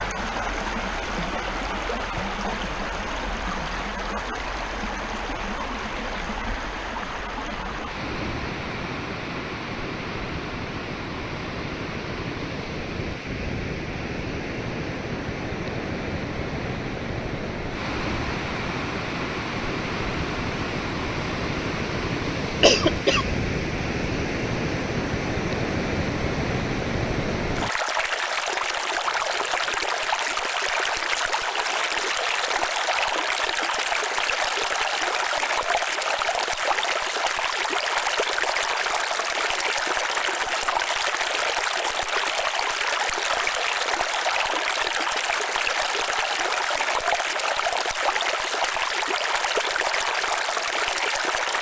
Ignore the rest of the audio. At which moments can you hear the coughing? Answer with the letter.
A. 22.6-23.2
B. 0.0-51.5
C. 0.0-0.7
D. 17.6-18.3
A.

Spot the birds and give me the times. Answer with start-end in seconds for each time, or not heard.
not heard.